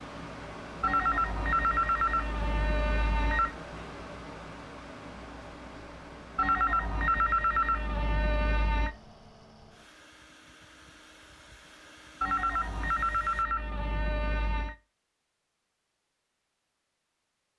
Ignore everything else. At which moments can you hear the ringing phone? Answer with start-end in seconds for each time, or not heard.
0.8-3.5, 6.3-8.9, 12.2-14.8.